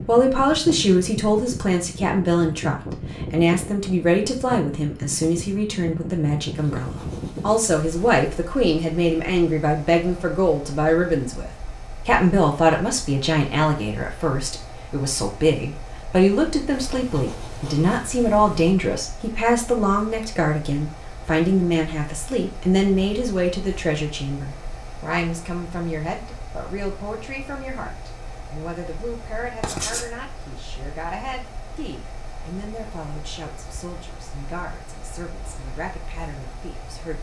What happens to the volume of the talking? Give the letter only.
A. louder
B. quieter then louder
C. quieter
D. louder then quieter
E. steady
C.